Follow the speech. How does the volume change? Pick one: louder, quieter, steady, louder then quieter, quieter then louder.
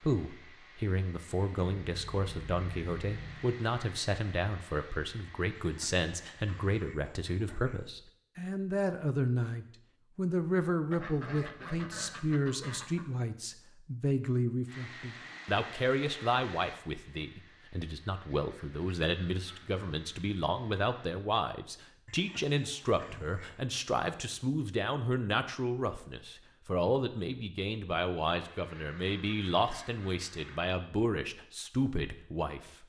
steady.